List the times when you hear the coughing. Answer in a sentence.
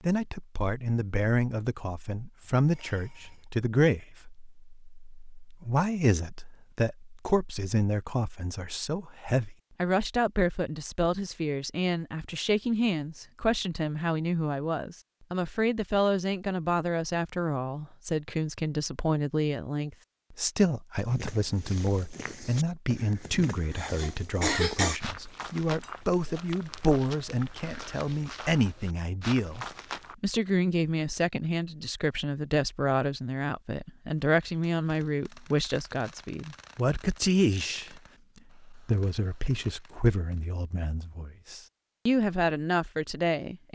The coughing can be heard from 23.2 to 25.0 s.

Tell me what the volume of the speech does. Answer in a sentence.
The volume of the speech stays about the same.